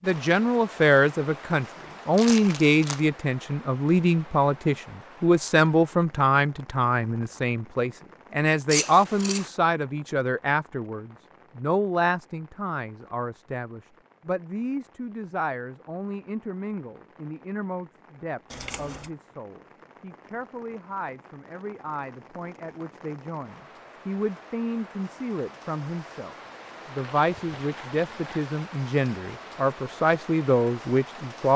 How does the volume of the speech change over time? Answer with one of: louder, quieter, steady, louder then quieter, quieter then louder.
quieter then louder.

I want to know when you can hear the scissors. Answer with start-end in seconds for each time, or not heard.
8.7-9.5, 18.5-19.1.